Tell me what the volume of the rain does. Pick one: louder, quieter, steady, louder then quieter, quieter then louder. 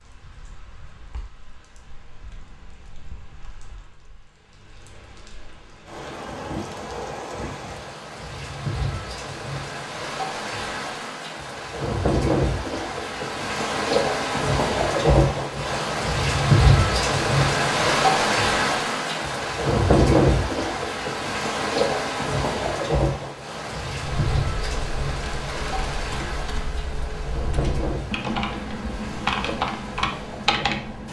louder then quieter.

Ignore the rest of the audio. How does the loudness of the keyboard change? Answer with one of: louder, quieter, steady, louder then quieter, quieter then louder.
louder.